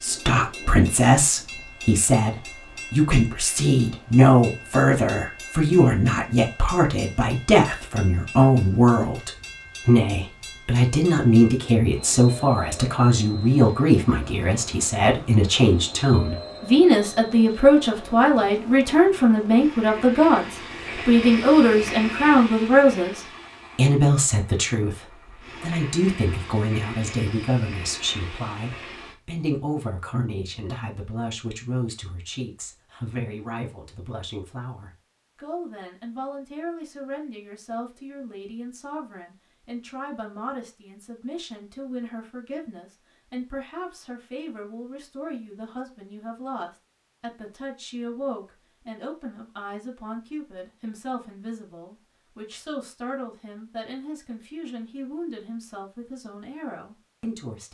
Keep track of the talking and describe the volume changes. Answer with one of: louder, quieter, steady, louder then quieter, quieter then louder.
quieter.